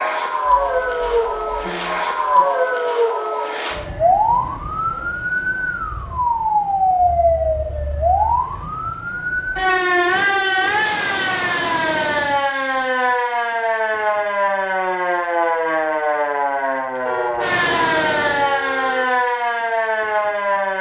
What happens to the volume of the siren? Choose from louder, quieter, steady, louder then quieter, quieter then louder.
steady.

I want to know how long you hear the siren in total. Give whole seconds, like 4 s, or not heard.
21 s.